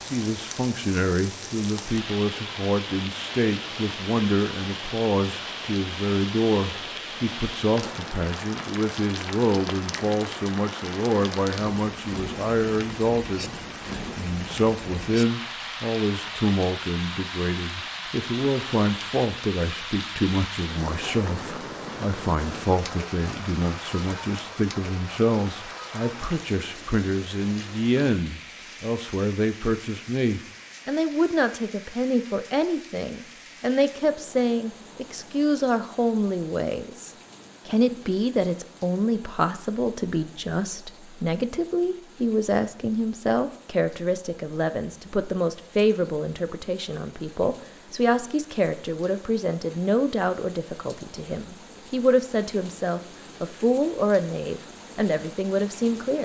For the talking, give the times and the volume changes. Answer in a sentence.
The talking can be heard from 0.1 to 56.1 s, at a steady volume.